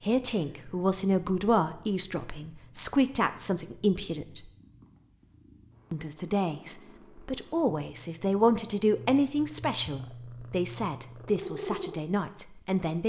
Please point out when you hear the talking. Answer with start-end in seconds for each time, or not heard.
0.0-4.5, 5.9-13.0.